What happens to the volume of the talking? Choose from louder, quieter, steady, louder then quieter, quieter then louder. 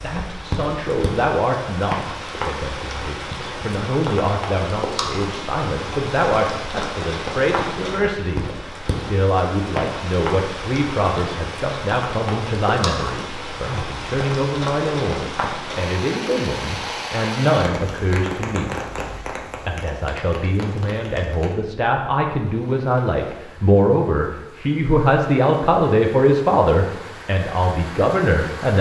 louder.